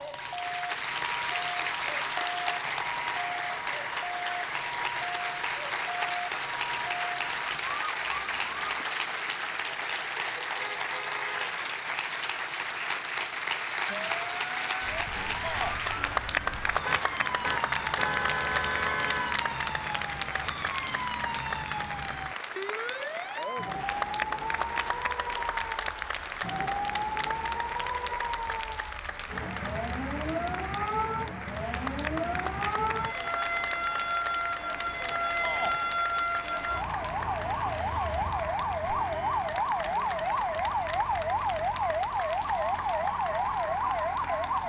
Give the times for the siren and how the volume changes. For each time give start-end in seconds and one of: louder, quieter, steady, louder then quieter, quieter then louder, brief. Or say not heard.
0.0-8.8 steady
13.8-44.6 louder.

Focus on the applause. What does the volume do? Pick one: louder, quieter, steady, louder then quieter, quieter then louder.
quieter.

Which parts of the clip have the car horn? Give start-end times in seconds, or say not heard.
10.6-11.4, 16.9-19.4, 38.9-39.4.